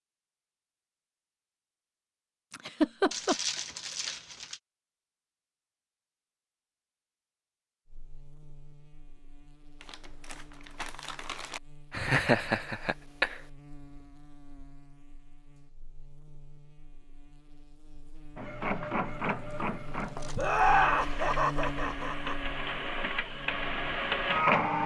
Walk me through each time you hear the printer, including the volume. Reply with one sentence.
You can hear the printer from 18.4 to 24.8 s, getting quieter then louder.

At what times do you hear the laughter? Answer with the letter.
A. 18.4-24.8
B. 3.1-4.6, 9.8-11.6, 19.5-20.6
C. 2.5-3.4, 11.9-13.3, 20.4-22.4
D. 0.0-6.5
C.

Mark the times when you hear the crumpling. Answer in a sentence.
You can hear the crumpling from 3.1 to 4.6 s, from 9.8 to 11.6 s and from 19.5 to 20.6 s.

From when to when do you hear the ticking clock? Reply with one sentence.
The ticking clock can't be heard in this clip.